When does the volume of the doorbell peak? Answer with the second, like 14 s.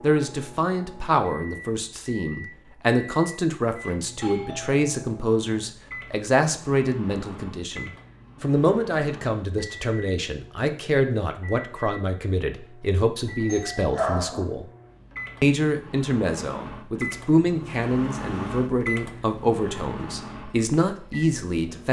14 s.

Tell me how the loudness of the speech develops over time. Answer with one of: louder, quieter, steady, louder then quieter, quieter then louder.
steady.